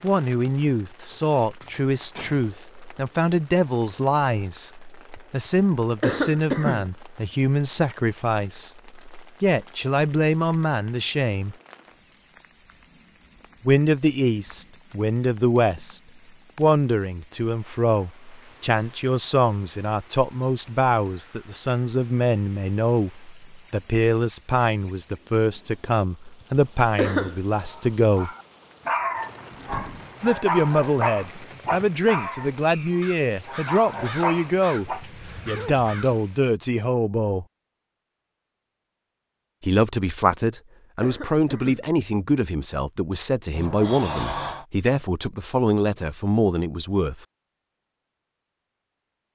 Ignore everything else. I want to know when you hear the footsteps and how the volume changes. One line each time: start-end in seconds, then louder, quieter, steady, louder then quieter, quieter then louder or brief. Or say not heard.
not heard.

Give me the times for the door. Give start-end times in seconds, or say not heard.
1.1-2.5, 29.5-30.1, 43.5-44.6.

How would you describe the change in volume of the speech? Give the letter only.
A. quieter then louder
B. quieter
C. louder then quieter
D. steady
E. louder
D.